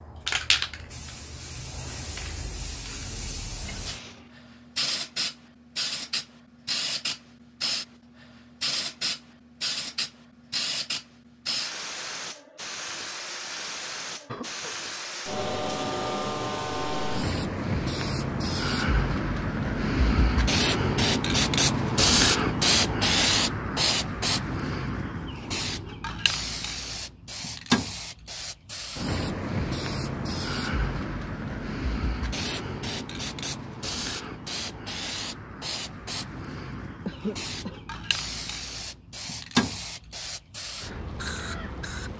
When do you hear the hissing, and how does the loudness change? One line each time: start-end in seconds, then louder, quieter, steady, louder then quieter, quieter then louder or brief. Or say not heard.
0.0-42.1 louder then quieter.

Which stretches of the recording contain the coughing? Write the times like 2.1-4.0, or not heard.
3.6-4.3, 14.2-14.8, 37.0-37.8.